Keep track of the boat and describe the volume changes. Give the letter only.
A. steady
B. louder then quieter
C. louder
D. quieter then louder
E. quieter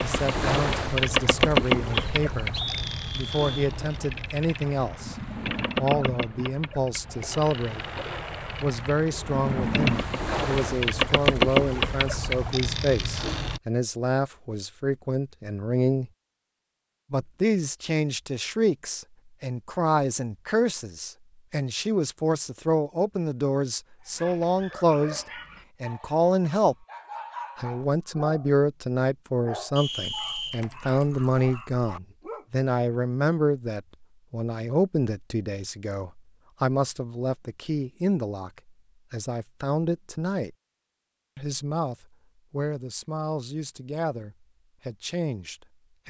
D.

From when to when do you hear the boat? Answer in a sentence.
You can hear the boat from 0.0 to 13.6 s.